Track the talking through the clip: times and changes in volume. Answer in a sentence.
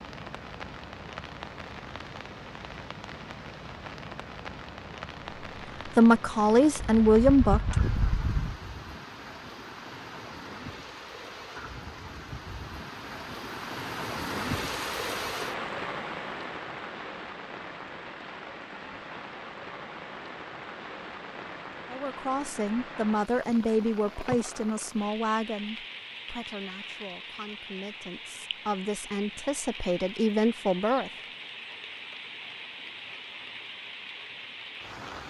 You can hear the talking briefly from 5.8 to 7.8 s; and from 21.9 to 31.1 s, getting quieter then louder.